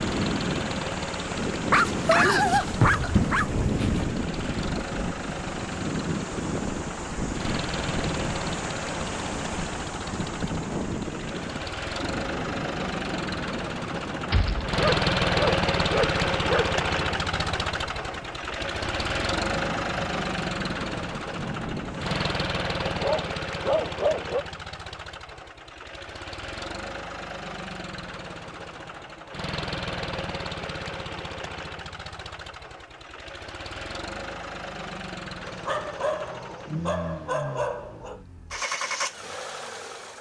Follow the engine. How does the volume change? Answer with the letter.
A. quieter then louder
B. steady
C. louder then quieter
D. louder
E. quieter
C.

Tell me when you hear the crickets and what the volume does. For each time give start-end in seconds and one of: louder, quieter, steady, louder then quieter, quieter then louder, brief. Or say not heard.
not heard.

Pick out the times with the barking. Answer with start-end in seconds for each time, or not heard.
1.7-4.2, 14.3-16.6, 22.9-24.4, 35.4-38.2.